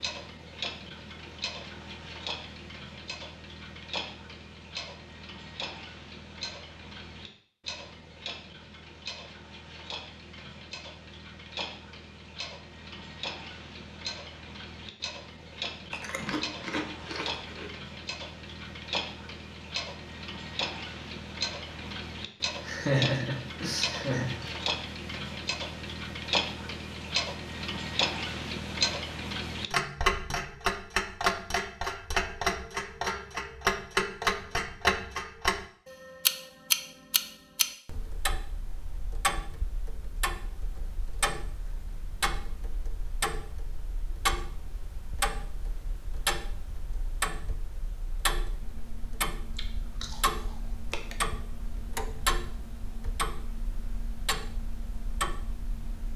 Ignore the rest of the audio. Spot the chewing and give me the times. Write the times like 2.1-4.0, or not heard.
15.9-17.7, 49.5-51.2.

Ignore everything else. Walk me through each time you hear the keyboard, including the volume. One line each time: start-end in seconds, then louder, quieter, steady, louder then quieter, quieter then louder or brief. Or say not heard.
not heard.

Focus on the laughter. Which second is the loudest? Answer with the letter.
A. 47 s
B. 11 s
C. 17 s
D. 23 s
D.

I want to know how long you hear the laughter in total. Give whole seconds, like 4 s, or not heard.
2 s.